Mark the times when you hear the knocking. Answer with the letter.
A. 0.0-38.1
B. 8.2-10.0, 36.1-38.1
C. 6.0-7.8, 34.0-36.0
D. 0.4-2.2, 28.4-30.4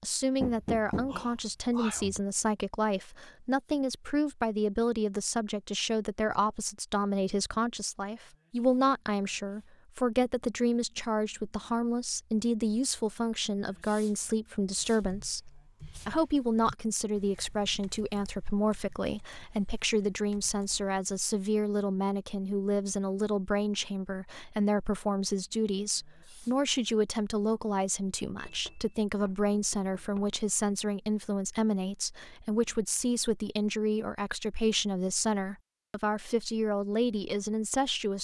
D.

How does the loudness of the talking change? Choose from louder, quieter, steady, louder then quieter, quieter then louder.
steady.